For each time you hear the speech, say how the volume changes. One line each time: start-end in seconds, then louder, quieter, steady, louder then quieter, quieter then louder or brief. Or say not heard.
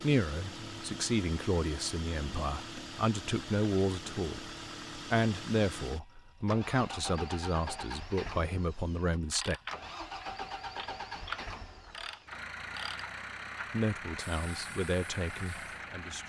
0.0-9.6 steady
13.7-16.2 brief.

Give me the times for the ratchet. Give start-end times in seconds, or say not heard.
9.2-15.8.